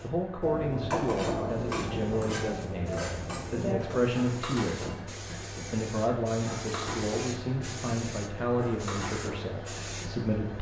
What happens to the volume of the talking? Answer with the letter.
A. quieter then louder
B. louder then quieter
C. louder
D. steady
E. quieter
D.